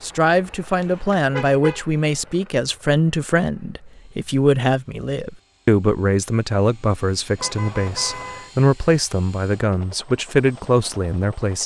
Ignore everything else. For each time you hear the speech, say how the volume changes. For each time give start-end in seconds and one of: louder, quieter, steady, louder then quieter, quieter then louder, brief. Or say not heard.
0.0-11.6 steady.